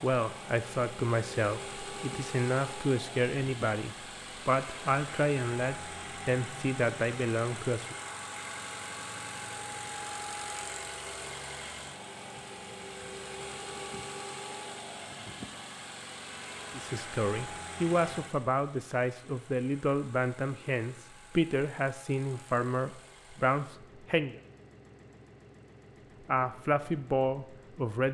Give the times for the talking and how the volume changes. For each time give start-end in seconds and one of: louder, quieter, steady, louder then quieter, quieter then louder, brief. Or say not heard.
0.0-8.0 steady
16.7-24.4 steady
26.2-28.0 brief.